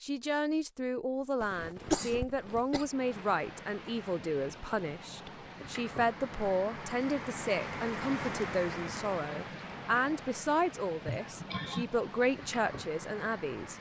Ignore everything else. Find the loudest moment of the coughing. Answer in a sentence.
The volume of the coughing peaks at 2 seconds.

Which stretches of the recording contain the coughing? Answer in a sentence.
You can hear the coughing from 1.4 to 2.9 s and from 11.1 to 11.9 s.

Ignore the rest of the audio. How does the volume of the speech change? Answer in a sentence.
The volume of the speech stays about the same.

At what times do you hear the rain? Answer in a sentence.
You can hear the rain from 2.6 to 13.7 s.